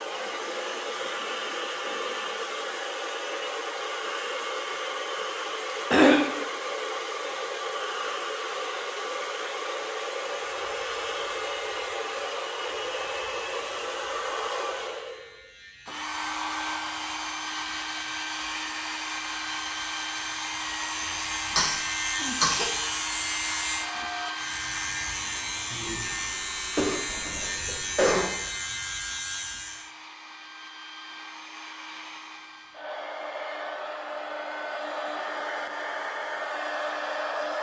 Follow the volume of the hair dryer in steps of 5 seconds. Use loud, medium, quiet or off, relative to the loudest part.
loud, loud, loud, loud, loud, medium, medium, loud.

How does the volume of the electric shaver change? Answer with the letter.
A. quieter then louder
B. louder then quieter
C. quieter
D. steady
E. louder
E.